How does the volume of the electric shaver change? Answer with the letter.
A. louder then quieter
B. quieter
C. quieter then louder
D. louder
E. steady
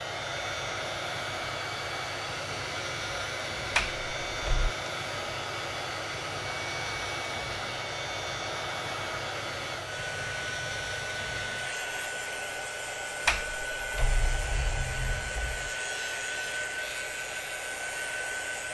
E.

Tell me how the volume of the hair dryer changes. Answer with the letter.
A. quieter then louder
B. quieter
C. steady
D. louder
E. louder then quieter
C.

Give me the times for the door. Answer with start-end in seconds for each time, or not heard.
3.7-4.8, 13.2-15.7.